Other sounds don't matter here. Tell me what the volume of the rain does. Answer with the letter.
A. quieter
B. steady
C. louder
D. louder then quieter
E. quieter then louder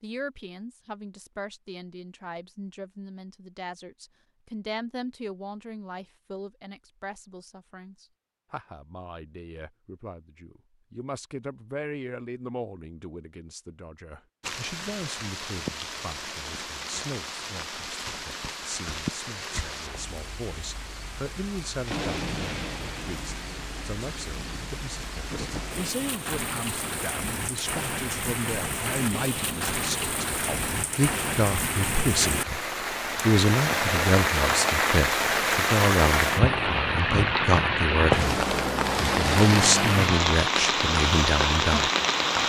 C.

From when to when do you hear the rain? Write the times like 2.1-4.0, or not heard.
14.4-42.4.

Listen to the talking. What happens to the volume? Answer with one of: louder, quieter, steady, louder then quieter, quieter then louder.
louder.